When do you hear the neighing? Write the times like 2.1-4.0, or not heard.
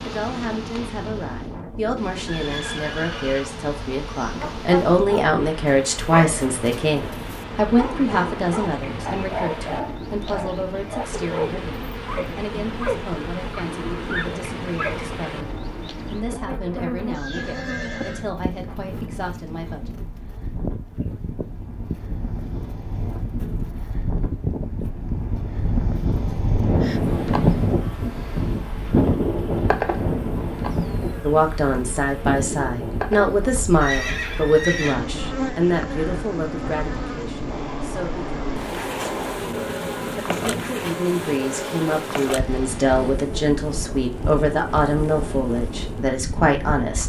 2.2-3.5, 17.1-18.2, 33.8-35.0.